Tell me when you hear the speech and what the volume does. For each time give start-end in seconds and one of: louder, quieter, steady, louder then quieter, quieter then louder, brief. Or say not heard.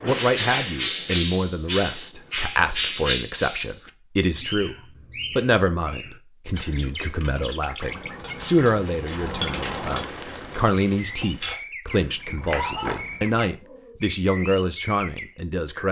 0.0-15.8 steady.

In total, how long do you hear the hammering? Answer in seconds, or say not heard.
2 s.